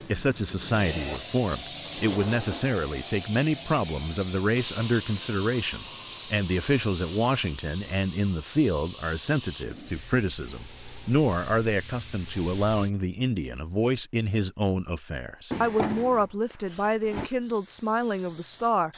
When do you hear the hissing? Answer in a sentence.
You can hear the hissing from 0.0 to 12.9 s and from 16.6 to 18.9 s.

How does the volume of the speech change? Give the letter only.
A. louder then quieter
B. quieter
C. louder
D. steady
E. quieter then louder
D.